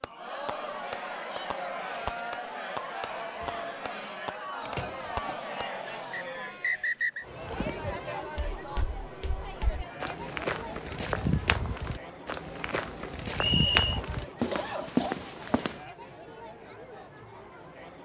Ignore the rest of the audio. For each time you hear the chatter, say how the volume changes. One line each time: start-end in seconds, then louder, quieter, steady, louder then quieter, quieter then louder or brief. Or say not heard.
0.0-18.0 quieter.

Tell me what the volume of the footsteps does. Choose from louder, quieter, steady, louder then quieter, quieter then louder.
louder.